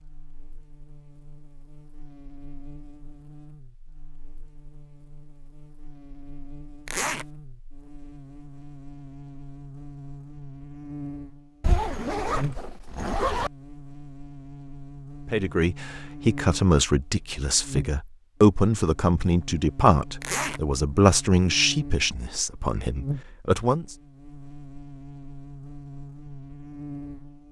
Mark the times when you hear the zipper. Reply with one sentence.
You can hear the zipper from 6.8 to 7.2 s, from 11.6 to 13.5 s and from 20.2 to 20.6 s.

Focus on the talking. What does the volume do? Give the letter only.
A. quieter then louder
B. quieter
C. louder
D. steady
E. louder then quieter
B.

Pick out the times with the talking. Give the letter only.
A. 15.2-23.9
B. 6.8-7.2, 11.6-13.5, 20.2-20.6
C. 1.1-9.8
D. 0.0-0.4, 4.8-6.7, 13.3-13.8
A.